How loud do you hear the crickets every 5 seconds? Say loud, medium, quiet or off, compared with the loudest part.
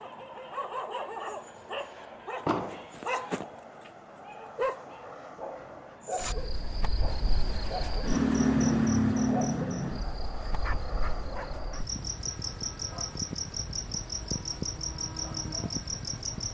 off, loud, medium, medium.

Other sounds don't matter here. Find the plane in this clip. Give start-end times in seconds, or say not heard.
0.0-16.4.